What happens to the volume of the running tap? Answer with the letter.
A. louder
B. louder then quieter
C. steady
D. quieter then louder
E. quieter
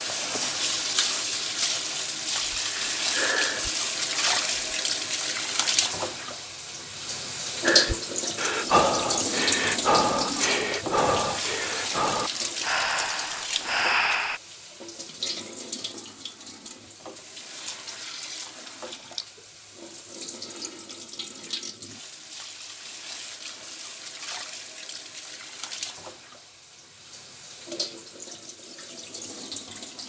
E.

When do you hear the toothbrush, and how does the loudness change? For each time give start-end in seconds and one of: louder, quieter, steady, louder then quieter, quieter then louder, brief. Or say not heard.
not heard.